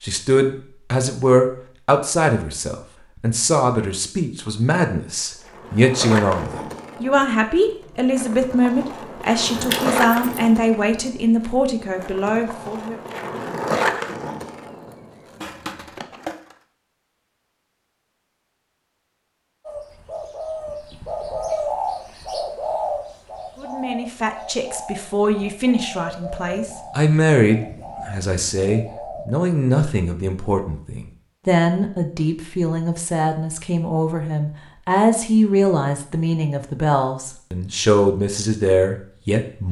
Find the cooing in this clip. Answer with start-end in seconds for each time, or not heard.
19.6-29.3.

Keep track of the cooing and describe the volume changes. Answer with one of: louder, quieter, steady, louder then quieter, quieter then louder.
quieter.